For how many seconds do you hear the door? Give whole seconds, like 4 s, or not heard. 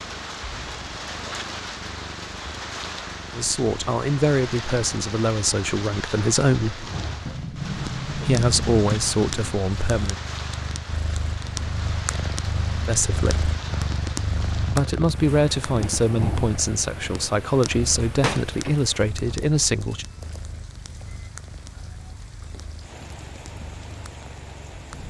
4 s.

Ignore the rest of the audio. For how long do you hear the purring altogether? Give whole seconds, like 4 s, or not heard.
25 s.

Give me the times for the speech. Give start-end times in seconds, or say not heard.
3.4-6.9, 8.2-10.2, 12.8-13.5, 14.6-20.1.